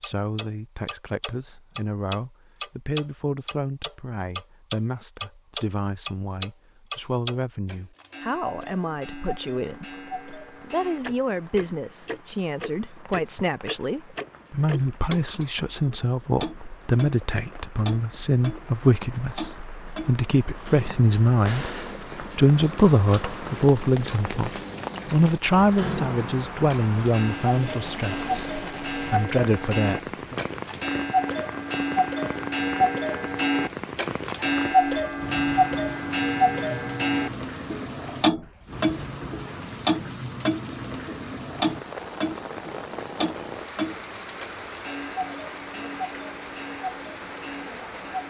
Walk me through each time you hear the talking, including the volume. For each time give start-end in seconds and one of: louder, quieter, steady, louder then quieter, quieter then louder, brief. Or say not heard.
0.0-30.4 louder.